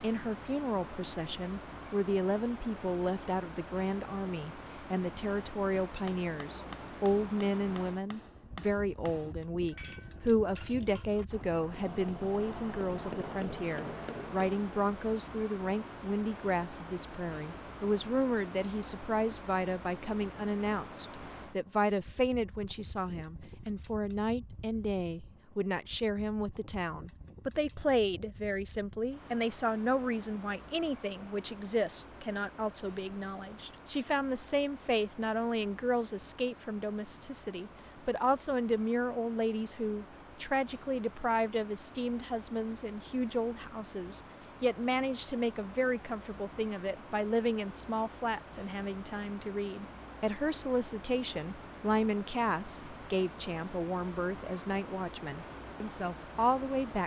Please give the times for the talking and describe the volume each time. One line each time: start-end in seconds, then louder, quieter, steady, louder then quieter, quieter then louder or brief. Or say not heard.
0.0-57.0 steady.